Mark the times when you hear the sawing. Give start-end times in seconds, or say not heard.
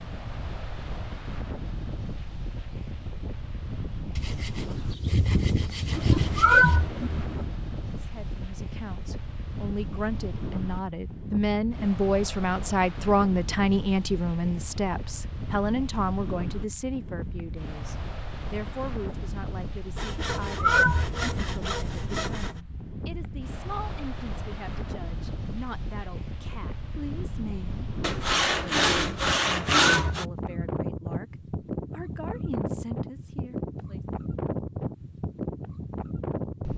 4.2-6.8, 19.9-22.6, 28.0-30.2.